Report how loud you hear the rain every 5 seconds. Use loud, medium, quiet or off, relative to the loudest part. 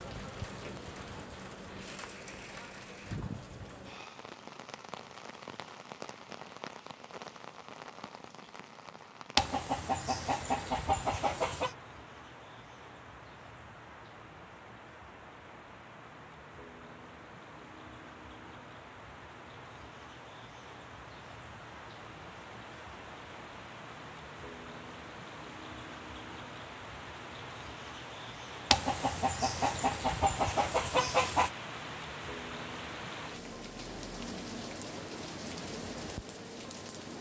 loud, medium, medium, medium, medium, loud, loud, loud.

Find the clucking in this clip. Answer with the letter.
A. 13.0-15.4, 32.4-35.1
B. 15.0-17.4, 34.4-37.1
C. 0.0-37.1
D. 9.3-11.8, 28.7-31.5
D.